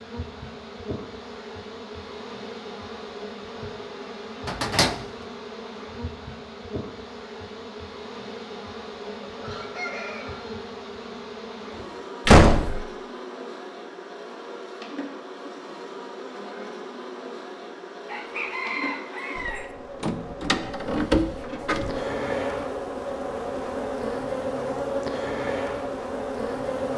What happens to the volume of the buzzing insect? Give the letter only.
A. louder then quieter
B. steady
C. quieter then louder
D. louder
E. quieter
D.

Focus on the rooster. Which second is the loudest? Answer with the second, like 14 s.
19 s.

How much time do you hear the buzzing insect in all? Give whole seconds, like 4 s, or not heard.
27 s.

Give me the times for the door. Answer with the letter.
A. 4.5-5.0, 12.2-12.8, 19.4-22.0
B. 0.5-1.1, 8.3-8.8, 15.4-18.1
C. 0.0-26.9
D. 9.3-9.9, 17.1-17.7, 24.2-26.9
A.